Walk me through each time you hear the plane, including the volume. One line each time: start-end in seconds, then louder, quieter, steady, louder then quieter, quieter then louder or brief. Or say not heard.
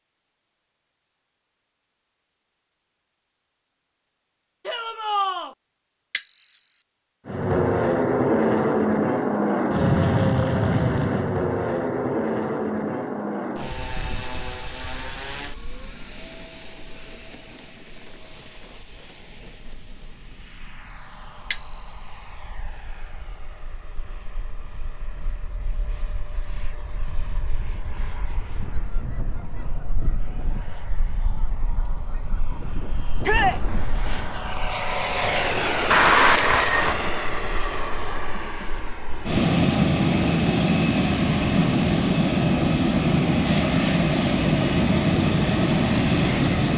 7.2-46.7 quieter then louder.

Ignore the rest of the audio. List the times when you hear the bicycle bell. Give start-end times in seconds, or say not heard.
6.2-6.8, 21.5-21.9, 35.9-37.0.